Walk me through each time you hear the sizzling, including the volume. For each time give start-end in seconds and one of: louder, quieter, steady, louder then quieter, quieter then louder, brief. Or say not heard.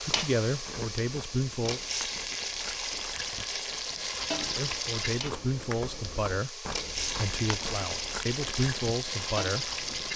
0.0-10.1 steady.